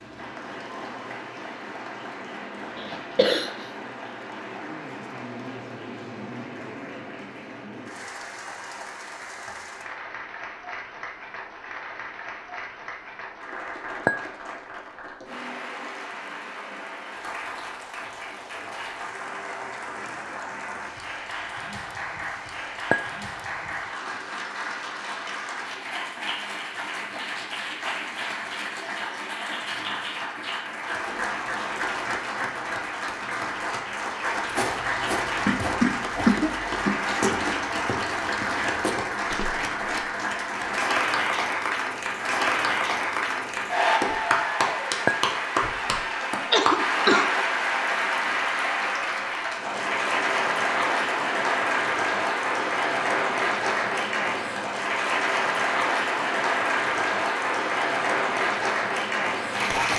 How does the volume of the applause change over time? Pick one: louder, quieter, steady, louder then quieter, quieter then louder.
louder.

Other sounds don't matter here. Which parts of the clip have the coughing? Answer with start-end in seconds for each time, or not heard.
2.8-3.6, 35.5-37.0, 46.5-47.2.